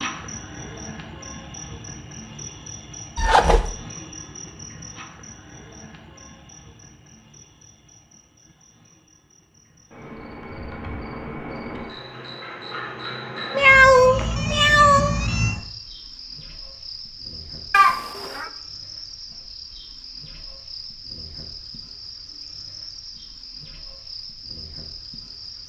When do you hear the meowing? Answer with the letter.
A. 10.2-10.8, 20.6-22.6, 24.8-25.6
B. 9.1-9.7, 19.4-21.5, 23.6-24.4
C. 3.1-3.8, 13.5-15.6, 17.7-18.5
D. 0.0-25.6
C.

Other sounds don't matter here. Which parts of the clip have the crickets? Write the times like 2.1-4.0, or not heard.
0.0-25.6.